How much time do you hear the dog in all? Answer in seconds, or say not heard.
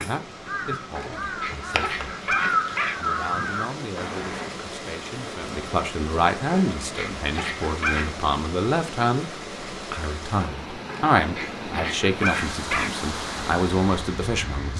6 s.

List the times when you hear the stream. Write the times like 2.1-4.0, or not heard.
0.0-14.7.